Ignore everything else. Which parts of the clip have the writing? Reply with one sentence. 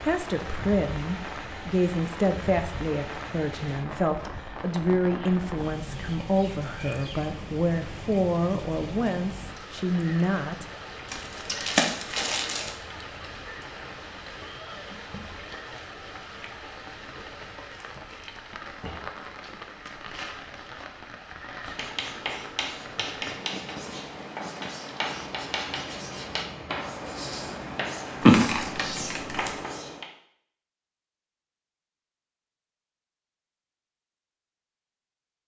The writing can be heard from 21.6 to 30.1 s.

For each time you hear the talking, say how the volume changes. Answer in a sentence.
You can hear the talking from 0.0 to 10.7 s, at a steady volume.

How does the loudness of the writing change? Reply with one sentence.
The loudness of the writing stays about the same.